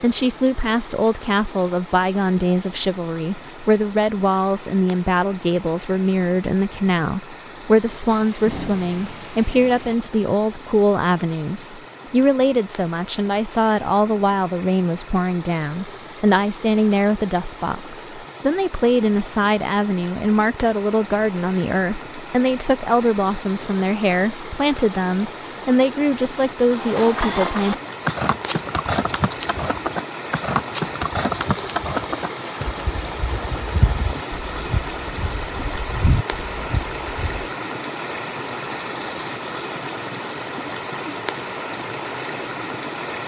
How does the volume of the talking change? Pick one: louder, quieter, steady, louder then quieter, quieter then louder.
steady.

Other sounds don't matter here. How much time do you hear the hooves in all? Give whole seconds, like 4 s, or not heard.
11 s.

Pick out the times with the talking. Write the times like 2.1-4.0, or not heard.
0.0-27.8.